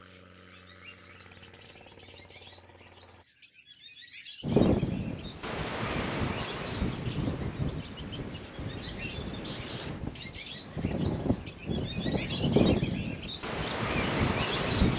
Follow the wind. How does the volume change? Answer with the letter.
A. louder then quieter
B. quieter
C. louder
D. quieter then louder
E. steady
D.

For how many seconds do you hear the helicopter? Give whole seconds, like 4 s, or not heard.
3 s.